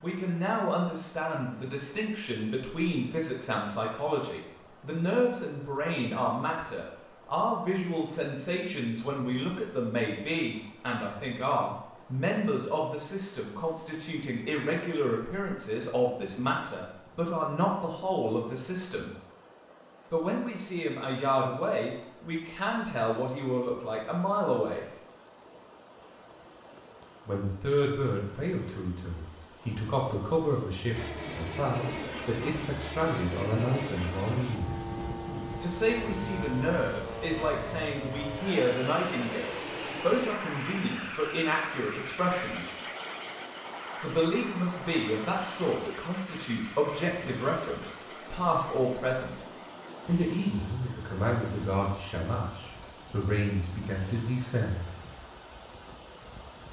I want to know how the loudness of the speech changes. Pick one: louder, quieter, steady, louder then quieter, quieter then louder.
steady.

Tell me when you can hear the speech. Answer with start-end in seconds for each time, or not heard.
0.0-19.1, 20.1-24.9, 27.2-34.8, 35.6-42.8, 44.0-49.4, 50.0-54.9.